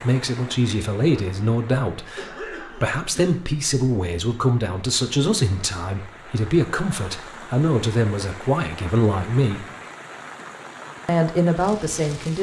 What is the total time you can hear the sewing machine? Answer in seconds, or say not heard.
not heard.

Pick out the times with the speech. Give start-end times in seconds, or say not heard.
0.0-9.7, 11.1-12.3.